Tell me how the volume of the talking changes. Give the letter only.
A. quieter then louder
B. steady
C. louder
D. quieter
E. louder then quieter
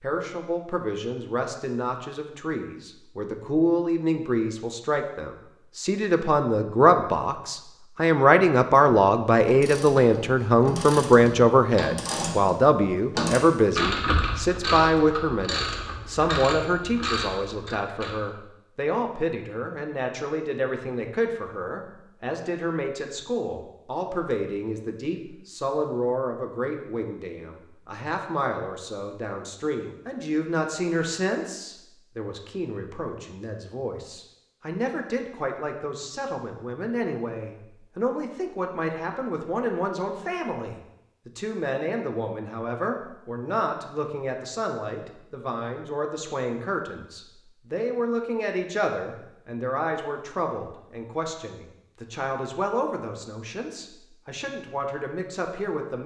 D.